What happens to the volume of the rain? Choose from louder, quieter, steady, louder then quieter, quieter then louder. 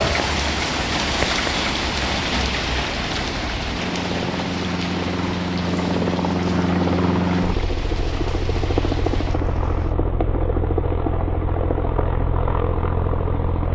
quieter.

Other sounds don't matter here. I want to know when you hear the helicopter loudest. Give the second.
7 s.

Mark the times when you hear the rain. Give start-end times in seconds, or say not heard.
0.0-9.9.